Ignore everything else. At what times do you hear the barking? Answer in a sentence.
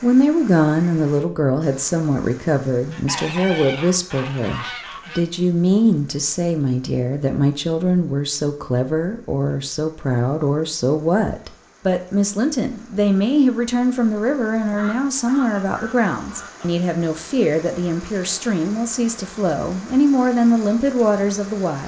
You can't hear the barking here.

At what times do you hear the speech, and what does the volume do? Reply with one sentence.
The speech can be heard from 0.0 to 21.8 s, at a steady volume.